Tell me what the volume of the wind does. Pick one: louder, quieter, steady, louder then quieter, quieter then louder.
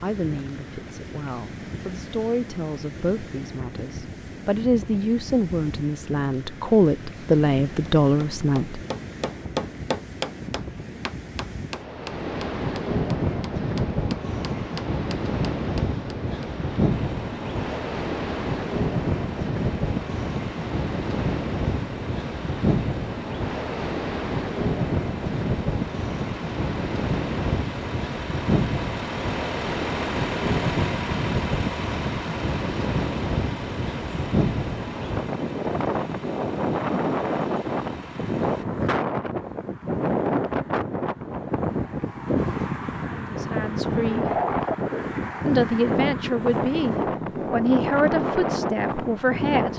louder.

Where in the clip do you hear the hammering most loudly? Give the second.
10 s.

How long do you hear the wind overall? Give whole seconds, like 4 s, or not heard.
50 s.